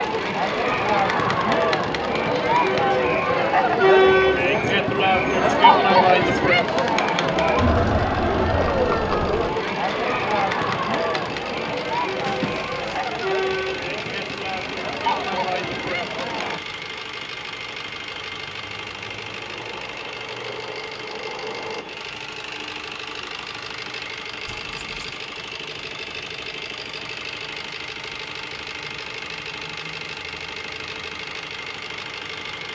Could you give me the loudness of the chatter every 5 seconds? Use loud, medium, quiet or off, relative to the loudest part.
loud, loud, medium, medium, off, off, off.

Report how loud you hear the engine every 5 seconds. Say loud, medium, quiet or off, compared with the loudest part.
medium, medium, loud, loud, loud, loud, loud.